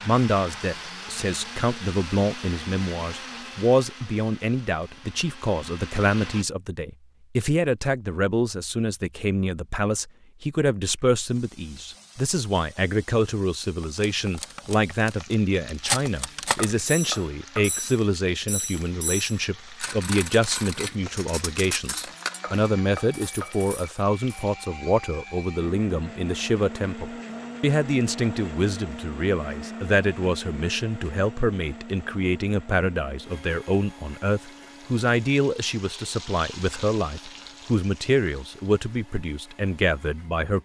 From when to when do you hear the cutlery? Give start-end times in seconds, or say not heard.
13.8-24.4.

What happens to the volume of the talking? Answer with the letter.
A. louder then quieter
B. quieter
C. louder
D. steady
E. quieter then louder
D.